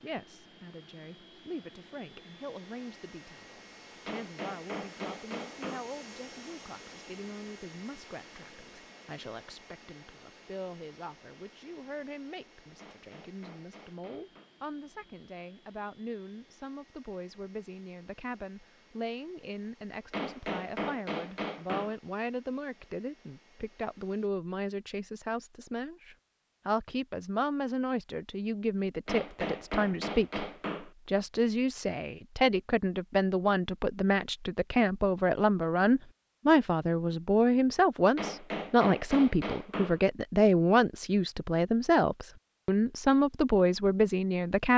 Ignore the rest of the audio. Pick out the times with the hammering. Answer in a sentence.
You can hear the hammering from 4.0 to 5.9 s, from 12.8 to 14.5 s, from 20.1 to 21.9 s, from 29.1 to 30.9 s and from 38.1 to 40.0 s.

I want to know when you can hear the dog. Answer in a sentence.
The dog can't be heard in this clip.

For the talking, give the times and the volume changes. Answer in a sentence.
The talking can be heard from 0.0 to 44.7 s, getting louder.